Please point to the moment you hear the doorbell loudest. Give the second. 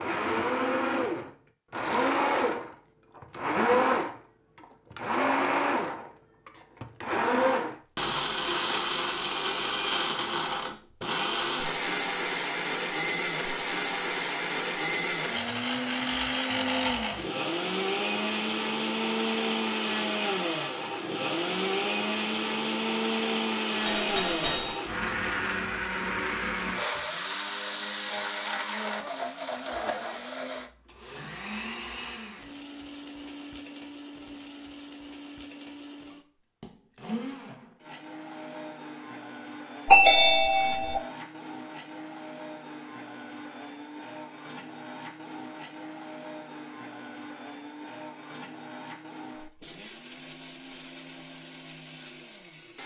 40 s.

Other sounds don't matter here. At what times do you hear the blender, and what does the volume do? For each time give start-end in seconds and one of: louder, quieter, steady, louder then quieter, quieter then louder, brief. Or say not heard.
0.0-52.8 quieter.